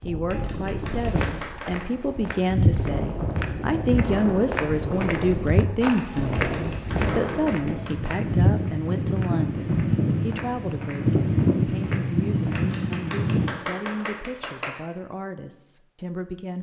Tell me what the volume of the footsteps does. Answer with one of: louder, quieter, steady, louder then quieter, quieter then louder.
quieter.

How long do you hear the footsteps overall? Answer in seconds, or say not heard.
12 s.